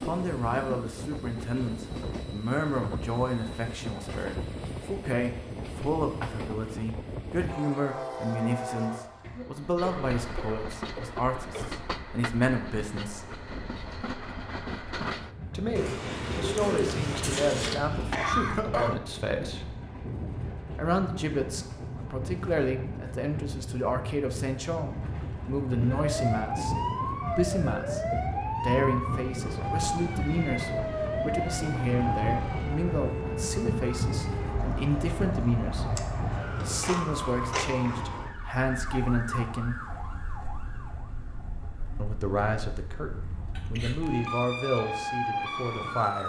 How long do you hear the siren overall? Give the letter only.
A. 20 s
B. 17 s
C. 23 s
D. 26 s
A.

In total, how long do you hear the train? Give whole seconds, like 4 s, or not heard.
37 s.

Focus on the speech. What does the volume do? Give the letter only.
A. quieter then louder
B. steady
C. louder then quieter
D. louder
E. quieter
B.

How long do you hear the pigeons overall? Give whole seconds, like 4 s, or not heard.
2 s.